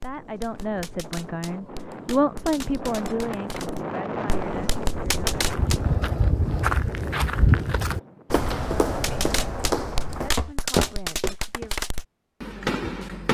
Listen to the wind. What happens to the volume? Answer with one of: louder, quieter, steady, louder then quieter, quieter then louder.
louder then quieter.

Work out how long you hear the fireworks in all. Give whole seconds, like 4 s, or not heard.
10 s.